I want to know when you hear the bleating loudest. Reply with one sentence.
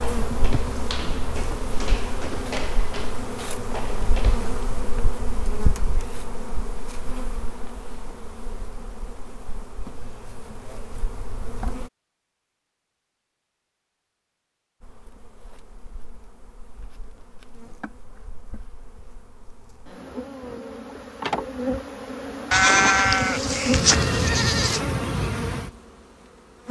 The loudest moment of the bleating is at 23 seconds.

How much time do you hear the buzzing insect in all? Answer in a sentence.
The buzzing insect can be heard for 24 seconds in total.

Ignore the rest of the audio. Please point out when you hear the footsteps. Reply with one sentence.
The footsteps can be heard from 0.0 to 4.6 s.